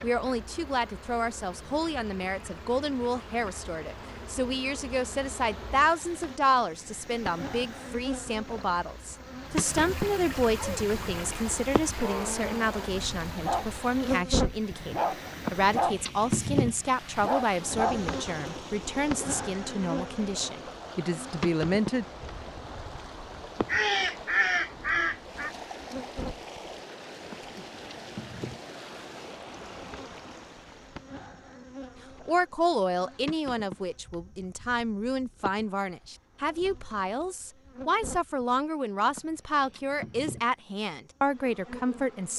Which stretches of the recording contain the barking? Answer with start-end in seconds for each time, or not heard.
10.6-18.0.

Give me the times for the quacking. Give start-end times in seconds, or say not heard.
23.6-25.5.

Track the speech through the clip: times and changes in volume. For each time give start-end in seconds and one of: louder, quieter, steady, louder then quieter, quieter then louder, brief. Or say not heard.
0.0-22.1 steady
32.2-42.3 steady.